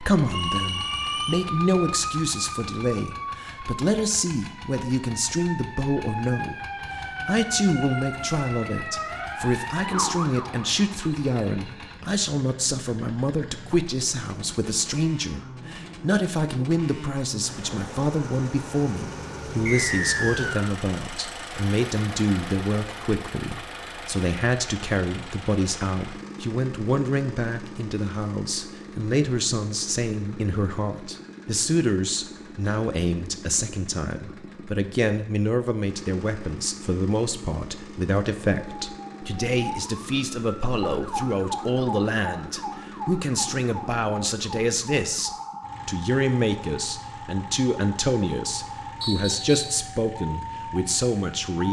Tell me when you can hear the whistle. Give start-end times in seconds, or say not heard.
0.3-1.4, 19.6-20.8, 49.0-49.5.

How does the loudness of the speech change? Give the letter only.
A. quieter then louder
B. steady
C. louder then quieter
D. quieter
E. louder
B.